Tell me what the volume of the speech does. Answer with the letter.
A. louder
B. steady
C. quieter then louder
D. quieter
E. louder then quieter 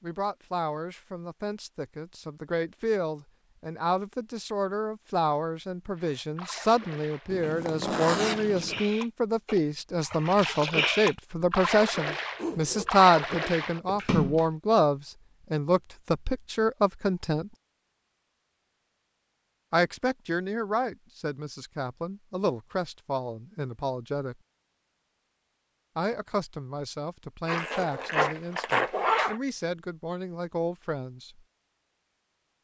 E.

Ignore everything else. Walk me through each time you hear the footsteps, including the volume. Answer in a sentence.
You can't hear the footsteps here.